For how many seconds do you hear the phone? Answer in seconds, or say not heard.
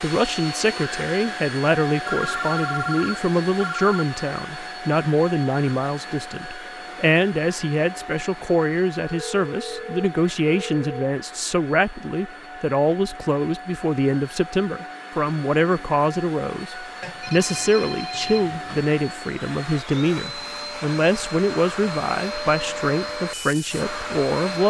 6 s.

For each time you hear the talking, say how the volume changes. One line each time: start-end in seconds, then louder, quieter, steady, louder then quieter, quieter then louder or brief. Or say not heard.
0.0-24.6 steady.